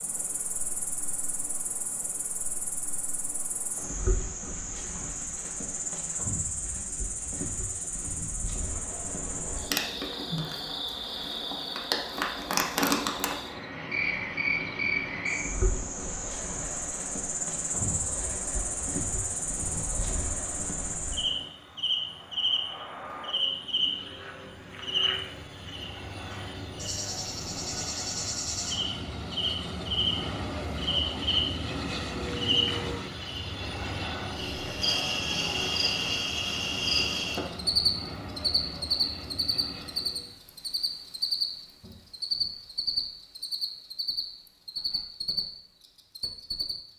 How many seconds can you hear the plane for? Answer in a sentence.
You can hear the plane for 32 seconds altogether.